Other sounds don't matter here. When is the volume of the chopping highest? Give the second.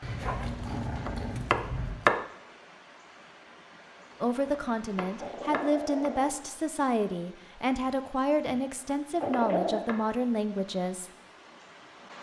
2 s.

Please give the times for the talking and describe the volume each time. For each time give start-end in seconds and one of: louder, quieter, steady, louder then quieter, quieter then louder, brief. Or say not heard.
4.2-11.1 steady.